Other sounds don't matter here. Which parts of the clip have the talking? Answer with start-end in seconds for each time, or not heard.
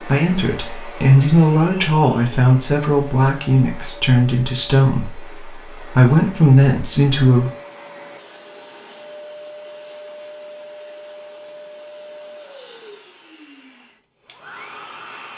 0.0-7.5.